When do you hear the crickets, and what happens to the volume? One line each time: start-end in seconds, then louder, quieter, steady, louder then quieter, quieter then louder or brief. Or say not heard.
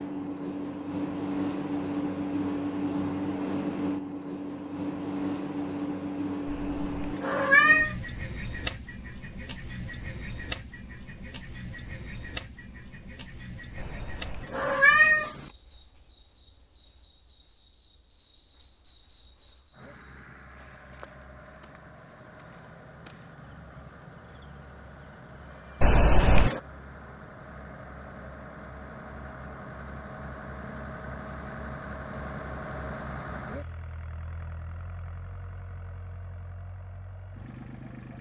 0.0-27.0 quieter.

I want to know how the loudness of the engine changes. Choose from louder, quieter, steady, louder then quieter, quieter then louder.
louder then quieter.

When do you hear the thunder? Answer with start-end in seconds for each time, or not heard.
not heard.